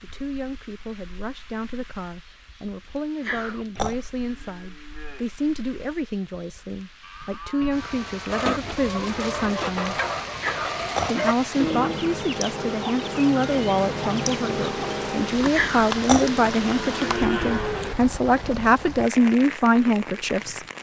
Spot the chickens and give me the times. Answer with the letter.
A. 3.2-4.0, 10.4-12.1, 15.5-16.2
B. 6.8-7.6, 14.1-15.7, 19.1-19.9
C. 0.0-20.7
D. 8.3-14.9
D.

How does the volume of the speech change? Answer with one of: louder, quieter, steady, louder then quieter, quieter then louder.
louder.